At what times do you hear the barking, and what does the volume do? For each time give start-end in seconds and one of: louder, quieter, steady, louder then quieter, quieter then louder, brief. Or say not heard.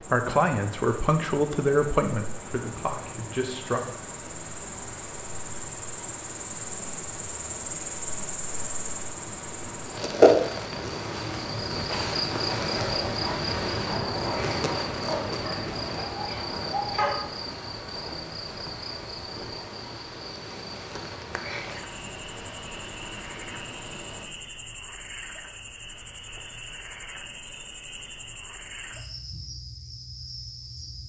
13.2-17.5 louder.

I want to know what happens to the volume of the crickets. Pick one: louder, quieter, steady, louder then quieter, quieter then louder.
louder then quieter.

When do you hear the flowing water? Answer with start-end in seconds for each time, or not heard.
0.0-24.2.